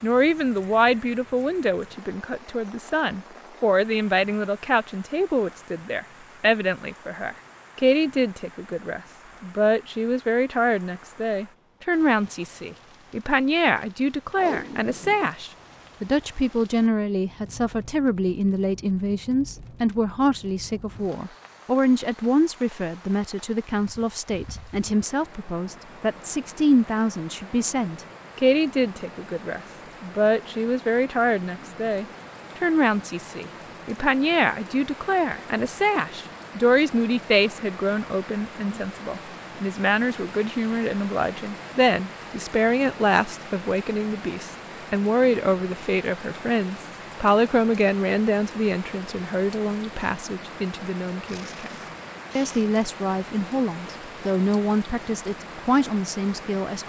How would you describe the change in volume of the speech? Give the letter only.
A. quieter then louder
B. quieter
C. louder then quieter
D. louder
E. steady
E.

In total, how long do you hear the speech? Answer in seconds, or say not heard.
56 s.